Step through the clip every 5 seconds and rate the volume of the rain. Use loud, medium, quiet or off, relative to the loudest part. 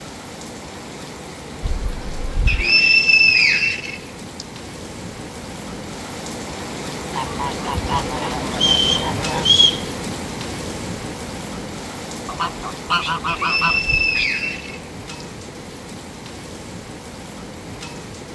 medium, loud, loud, medium.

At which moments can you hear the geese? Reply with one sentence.
The geese can be heard from 1.6 to 2.7 s, from 7.1 to 9.6 s and from 12.2 to 14.3 s.